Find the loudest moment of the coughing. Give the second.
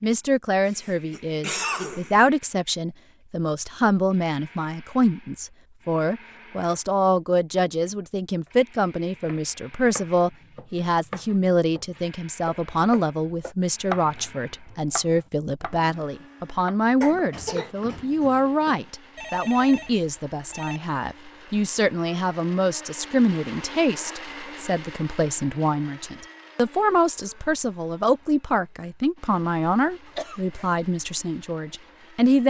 2 s.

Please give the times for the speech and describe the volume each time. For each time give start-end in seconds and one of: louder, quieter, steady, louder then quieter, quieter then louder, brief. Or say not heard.
0.0-32.4 steady.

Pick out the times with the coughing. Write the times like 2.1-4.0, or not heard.
0.7-2.1, 17.0-18.2, 30.1-30.6.